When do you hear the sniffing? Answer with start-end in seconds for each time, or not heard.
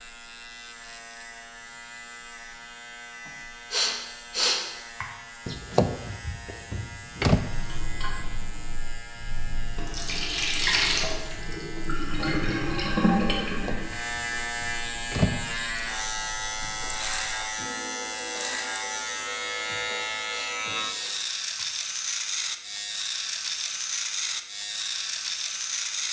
3.2-5.0, 20.2-21.6.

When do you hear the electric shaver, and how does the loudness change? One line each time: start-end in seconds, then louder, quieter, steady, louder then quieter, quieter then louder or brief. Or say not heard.
0.0-26.0 louder.